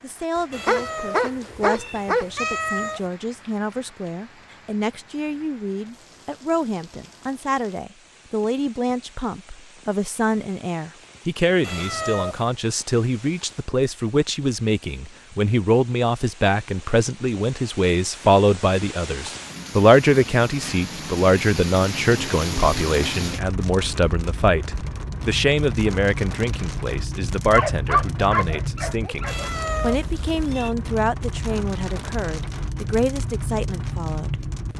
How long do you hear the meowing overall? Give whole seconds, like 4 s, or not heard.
5 s.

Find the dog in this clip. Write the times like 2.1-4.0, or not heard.
0.7-2.2, 27.5-29.5.